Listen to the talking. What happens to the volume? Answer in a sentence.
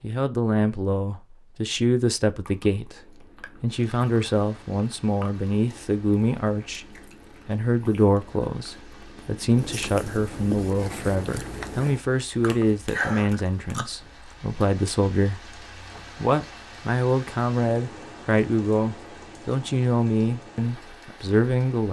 The loudness of the talking stays about the same.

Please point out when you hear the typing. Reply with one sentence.
The typing can't be heard in this clip.